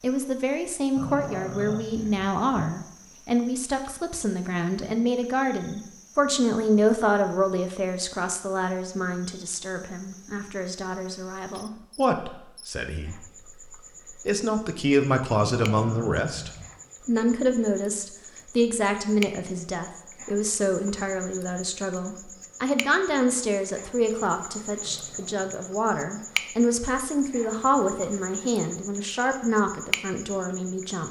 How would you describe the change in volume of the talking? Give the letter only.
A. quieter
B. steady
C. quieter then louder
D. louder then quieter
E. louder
B.